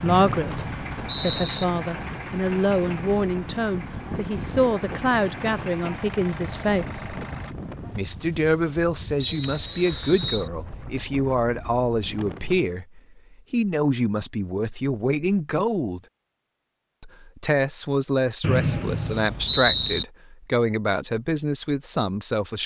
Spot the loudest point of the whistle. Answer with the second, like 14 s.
20 s.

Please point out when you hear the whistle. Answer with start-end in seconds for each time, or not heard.
0.1-1.6, 9.2-10.5, 18.4-20.1.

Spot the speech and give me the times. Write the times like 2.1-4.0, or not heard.
0.0-7.2, 8.0-16.0, 17.0-22.6.